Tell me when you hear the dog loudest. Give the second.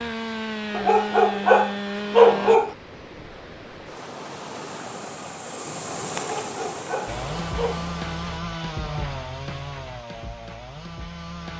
2 s.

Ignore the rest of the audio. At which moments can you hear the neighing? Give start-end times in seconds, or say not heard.
not heard.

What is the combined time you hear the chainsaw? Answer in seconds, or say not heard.
7 s.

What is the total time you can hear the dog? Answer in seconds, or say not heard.
4 s.